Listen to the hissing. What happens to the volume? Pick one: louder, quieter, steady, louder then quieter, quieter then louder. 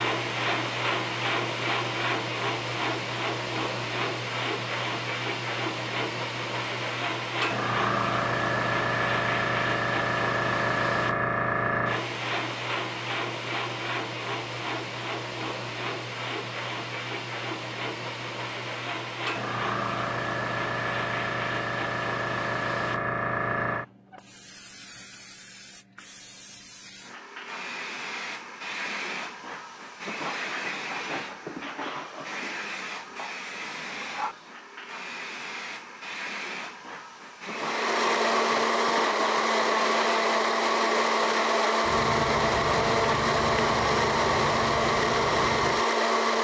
quieter.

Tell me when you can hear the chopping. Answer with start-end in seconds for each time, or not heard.
not heard.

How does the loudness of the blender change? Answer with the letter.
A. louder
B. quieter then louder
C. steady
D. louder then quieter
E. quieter
C.